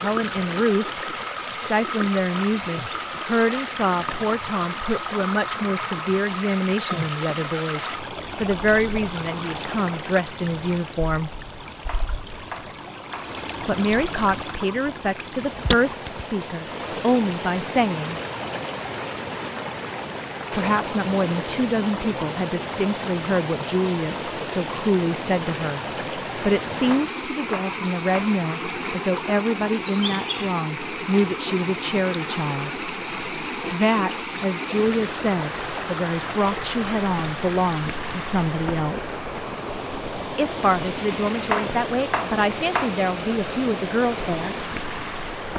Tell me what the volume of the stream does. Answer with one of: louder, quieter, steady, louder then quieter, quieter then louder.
steady.